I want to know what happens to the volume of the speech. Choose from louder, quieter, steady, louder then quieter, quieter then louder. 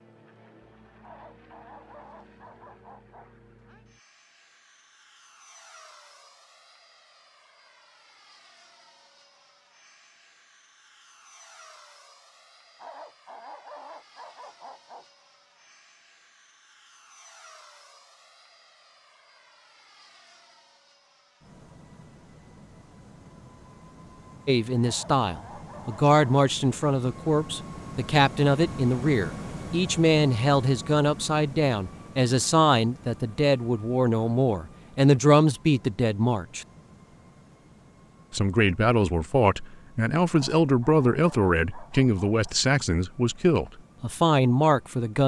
steady.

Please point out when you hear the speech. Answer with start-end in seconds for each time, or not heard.
24.4-36.6, 38.3-45.2.